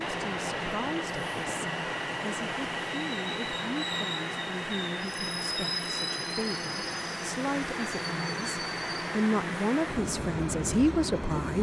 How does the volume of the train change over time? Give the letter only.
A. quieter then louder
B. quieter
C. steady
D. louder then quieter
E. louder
C.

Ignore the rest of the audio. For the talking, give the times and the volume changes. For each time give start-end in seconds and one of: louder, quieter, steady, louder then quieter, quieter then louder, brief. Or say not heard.
0.0-11.5 louder.